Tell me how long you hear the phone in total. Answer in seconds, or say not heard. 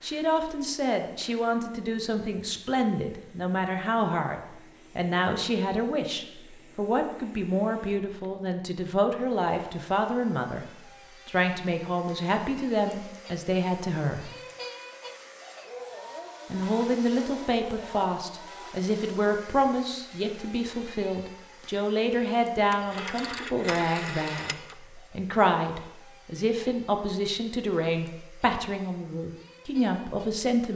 2 s.